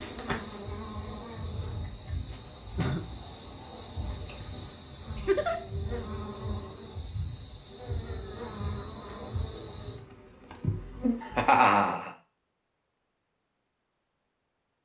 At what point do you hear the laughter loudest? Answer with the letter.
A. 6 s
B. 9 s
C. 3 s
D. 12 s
D.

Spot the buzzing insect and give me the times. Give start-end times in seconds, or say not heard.
0.0-11.9.